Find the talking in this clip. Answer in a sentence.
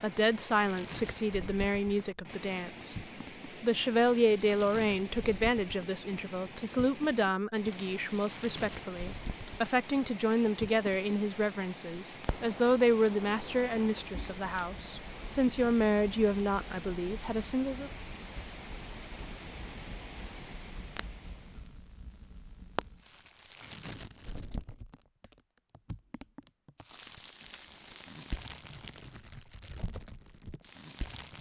You can hear the talking from 0.0 to 17.9 s.